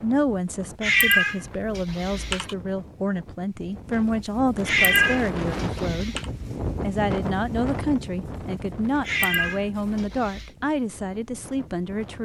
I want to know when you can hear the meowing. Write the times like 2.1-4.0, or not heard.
0.8-2.5, 4.7-6.2, 9.1-10.5.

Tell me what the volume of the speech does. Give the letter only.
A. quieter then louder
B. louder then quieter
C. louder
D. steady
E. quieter
D.